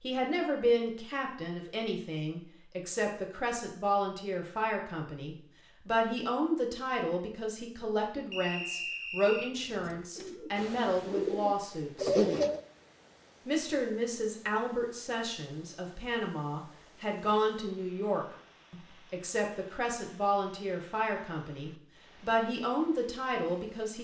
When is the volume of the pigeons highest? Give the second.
12 s.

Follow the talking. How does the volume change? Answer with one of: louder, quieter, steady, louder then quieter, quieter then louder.
steady.